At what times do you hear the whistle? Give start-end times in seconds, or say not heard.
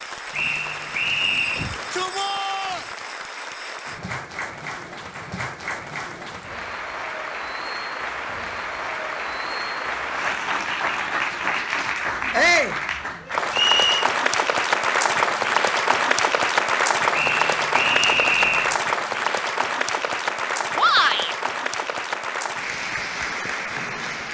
0.3-1.7, 13.5-14.1, 17.1-18.8.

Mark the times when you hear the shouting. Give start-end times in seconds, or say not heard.
1.6-2.9, 12.3-12.8, 20.8-21.4.